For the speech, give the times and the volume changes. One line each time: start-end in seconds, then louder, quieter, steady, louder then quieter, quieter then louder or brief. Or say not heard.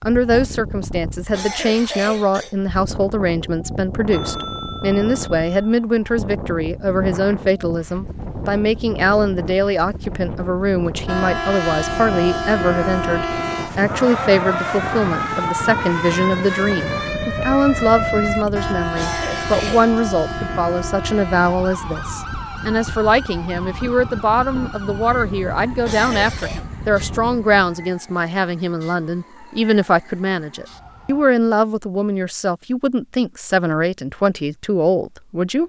0.0-35.6 steady.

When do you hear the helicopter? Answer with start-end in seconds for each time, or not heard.
not heard.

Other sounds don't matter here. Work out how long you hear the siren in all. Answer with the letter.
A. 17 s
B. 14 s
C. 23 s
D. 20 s
D.